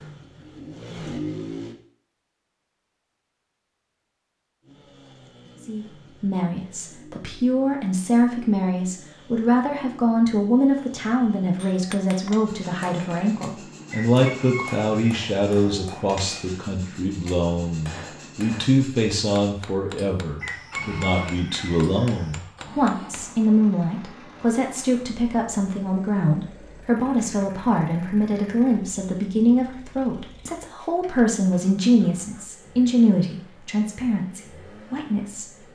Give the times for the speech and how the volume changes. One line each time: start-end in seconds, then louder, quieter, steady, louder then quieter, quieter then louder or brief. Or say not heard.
5.6-35.5 steady.